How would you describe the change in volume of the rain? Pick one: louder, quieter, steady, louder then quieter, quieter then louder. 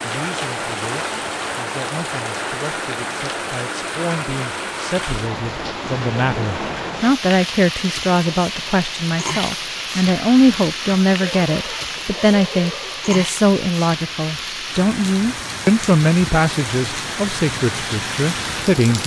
steady.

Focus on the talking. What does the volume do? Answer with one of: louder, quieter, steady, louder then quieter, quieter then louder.
louder.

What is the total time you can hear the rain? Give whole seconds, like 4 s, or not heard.
19 s.